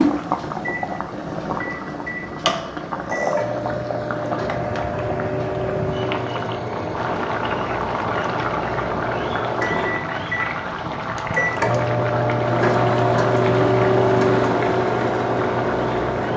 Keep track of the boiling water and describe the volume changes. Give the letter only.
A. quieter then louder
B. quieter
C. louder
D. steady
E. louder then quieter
D.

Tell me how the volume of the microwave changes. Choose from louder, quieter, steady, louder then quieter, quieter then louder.
louder.